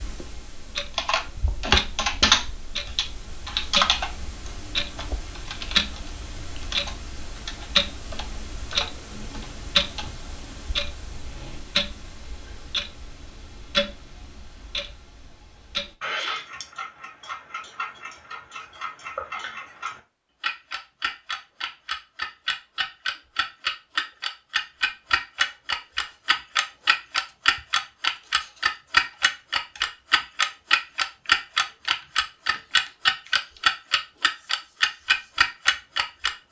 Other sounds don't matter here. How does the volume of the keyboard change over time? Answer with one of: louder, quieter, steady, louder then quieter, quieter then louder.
quieter.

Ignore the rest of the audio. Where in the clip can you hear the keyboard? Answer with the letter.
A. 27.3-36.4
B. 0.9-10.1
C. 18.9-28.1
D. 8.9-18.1
B.